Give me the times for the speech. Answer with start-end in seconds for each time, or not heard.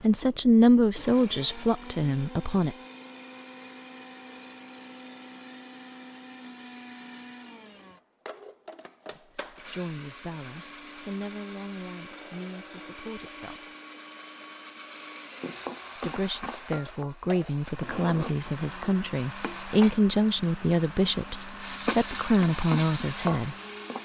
0.0-2.8, 9.5-13.6, 16.0-23.6.